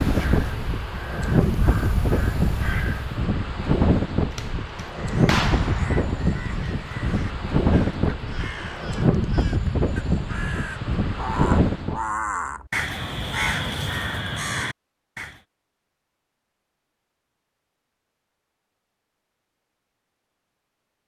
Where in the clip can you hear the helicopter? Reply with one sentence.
You can't hear the helicopter here.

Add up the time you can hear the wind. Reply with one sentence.
You can hear the wind for 12 seconds altogether.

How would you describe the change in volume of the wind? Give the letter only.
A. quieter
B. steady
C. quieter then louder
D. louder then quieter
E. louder
B.